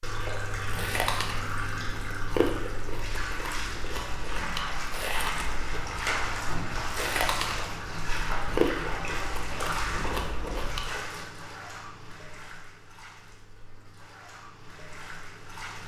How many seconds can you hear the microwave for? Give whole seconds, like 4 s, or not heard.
not heard.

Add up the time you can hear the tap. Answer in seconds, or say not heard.
16 s.